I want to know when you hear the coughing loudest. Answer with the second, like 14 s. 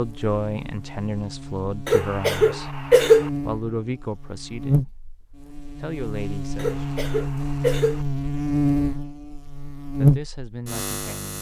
3 s.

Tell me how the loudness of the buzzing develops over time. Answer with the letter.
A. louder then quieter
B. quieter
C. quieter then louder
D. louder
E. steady
D.